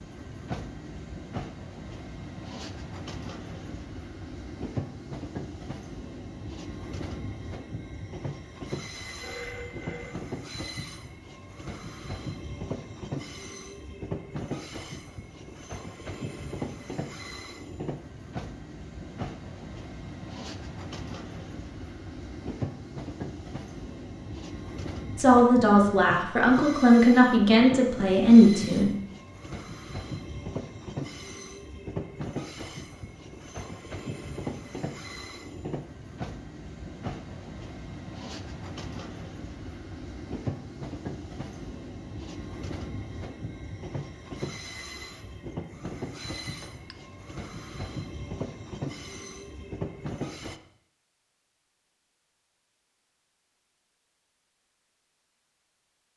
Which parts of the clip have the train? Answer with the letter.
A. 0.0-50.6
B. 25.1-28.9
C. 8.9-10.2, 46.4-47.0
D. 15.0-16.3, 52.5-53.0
A.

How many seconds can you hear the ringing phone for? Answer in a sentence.
The ringing phone can be heard for 2 seconds in total.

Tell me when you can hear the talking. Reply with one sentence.
The talking can be heard from 25.1 to 28.9 s.